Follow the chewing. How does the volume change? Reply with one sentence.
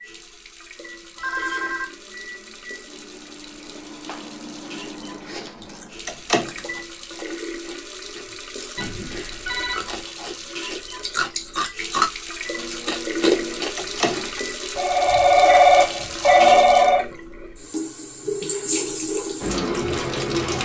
The loudness of the chewing goes up, then down.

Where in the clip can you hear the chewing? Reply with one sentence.
You can hear the chewing from 5.2 to 16.2 s.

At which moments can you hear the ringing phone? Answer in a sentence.
The ringing phone can be heard from 1.1 to 1.9 s, from 8.8 to 10.1 s and from 14.8 to 17.1 s.